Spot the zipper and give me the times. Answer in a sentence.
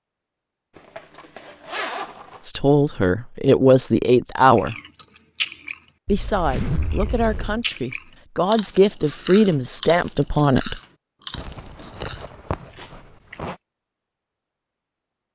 The zipper can be heard from 0.8 to 2.4 s, from 6.0 to 7.7 s and from 11.3 to 13.6 s.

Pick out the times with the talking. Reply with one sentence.
You can hear the talking from 2.5 to 4.8 s and from 6.0 to 10.8 s.